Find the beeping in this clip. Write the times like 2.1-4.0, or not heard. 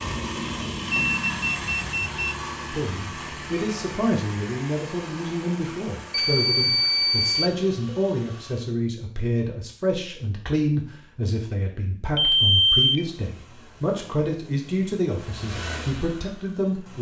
0.9-2.4, 6.1-7.5, 12.2-13.1.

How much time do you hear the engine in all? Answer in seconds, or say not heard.
13 s.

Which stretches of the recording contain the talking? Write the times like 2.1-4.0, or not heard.
2.7-16.9.